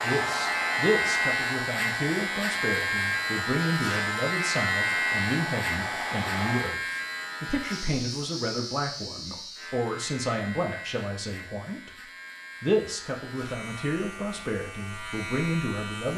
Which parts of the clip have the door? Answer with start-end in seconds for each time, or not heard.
not heard.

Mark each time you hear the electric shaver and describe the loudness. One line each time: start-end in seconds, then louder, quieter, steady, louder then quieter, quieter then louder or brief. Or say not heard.
0.0-16.1 quieter.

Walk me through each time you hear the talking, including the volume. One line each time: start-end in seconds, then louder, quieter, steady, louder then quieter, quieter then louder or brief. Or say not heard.
0.0-16.1 steady.